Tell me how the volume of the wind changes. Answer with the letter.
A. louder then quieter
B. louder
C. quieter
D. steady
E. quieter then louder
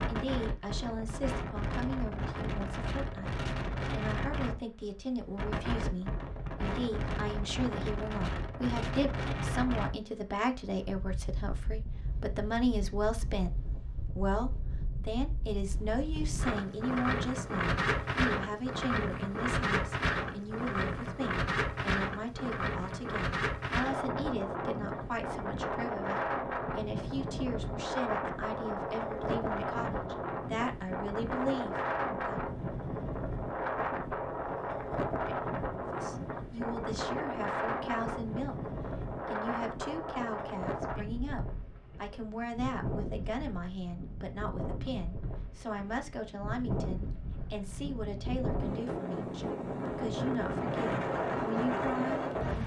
D.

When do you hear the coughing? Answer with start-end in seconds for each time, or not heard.
not heard.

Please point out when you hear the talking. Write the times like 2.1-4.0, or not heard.
0.0-32.4, 35.9-38.6, 39.2-52.6.